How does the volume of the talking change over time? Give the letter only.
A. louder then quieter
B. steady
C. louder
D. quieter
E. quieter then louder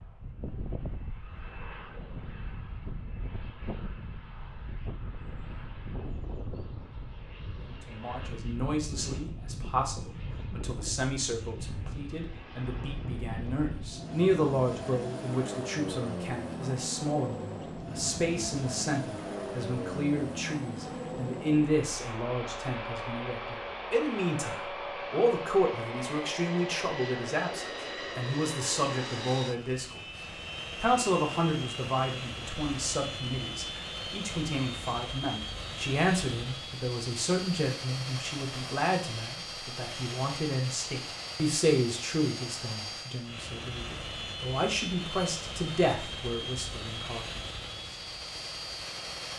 B.